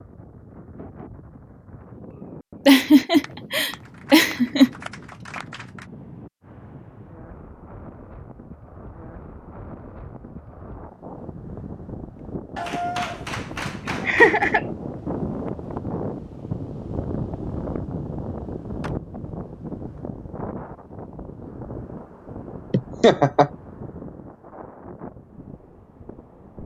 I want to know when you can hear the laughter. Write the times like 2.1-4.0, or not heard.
2.6-4.7, 14.1-14.6, 22.7-23.5.